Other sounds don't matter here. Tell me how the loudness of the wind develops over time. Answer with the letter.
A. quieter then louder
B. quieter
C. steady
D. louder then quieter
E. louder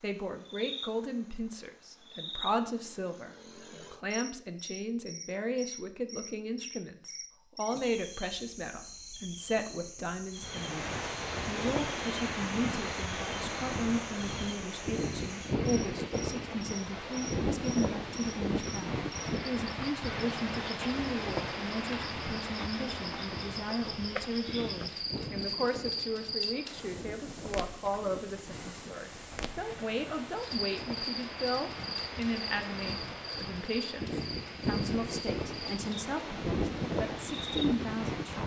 A.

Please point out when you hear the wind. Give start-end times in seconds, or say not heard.
10.3-38.4.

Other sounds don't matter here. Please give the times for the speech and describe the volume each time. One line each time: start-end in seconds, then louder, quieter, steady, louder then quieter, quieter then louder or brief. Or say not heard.
0.0-38.2 steady.